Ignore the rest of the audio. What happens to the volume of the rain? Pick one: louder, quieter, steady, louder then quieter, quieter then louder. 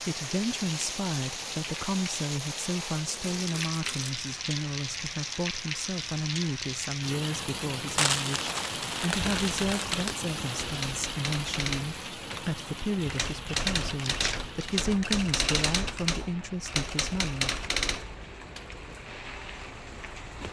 quieter.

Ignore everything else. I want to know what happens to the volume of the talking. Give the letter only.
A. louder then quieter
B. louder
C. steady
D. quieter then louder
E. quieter
C.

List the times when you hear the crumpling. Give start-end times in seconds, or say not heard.
3.0-4.2, 8.0-10.2, 14.1-14.8.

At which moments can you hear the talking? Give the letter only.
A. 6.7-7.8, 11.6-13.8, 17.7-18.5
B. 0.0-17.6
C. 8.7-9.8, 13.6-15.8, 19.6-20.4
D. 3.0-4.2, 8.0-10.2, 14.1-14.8
B.